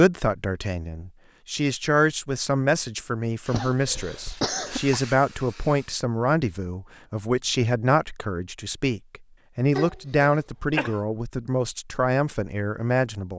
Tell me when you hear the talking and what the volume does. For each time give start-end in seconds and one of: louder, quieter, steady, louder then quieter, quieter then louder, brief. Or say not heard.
0.0-13.3 steady.